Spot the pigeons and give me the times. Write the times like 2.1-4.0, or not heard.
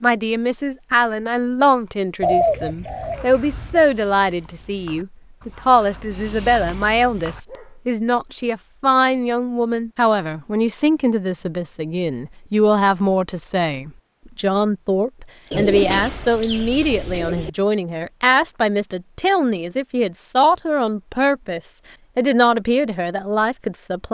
2.2-3.9, 15.5-17.5.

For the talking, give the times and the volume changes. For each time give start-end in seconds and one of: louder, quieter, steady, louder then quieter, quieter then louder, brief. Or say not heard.
0.0-24.0 steady.